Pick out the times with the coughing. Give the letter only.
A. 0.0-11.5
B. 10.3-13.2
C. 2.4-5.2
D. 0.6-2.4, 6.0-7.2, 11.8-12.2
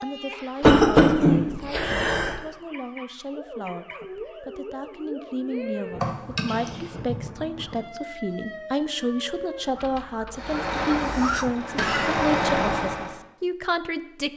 D.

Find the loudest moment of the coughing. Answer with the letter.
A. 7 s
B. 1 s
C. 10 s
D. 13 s
B.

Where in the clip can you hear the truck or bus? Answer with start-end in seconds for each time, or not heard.
10.3-13.2.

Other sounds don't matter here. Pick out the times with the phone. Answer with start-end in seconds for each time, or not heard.
not heard.